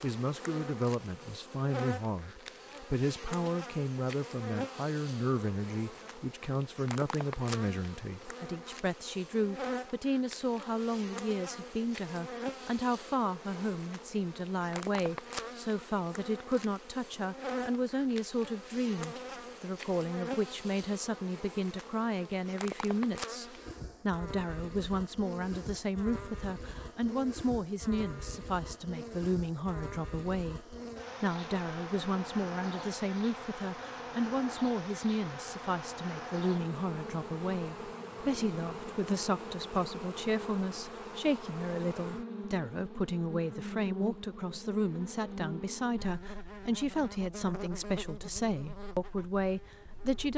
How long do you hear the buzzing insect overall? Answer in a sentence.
The buzzing insect can be heard for 50 seconds in total.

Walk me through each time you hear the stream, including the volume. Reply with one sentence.
You can't hear the stream here.